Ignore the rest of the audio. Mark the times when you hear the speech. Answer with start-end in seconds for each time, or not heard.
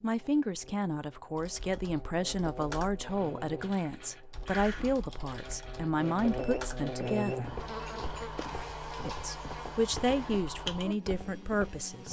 0.0-7.6, 9.1-12.0.